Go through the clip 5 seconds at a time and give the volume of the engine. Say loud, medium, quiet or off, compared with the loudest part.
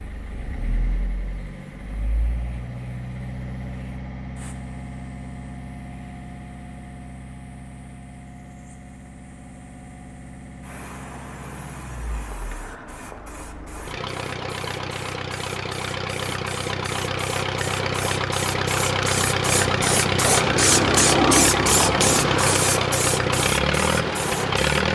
quiet, quiet, quiet, loud, loud.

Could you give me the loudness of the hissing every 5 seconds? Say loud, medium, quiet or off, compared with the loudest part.
quiet, quiet, quiet, medium, loud.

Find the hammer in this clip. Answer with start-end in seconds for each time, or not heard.
not heard.